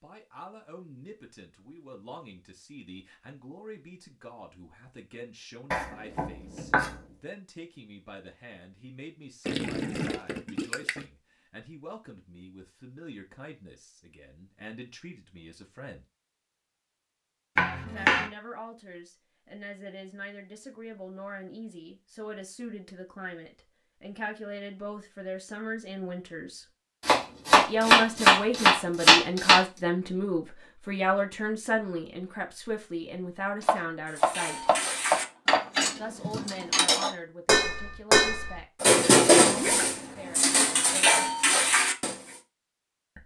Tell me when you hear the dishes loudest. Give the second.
39 s.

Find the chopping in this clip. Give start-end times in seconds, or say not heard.
5.7-6.9, 17.6-18.2, 27.1-29.6, 33.6-35.6.